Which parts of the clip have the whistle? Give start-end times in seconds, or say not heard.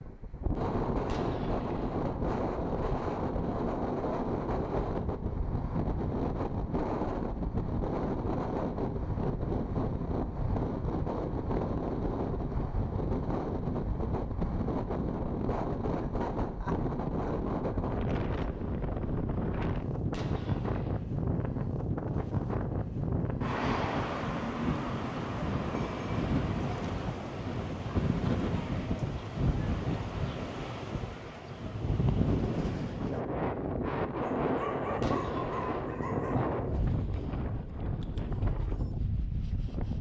not heard.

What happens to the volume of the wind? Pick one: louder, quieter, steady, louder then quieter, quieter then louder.
steady.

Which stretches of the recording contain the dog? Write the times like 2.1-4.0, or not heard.
34.2-36.4.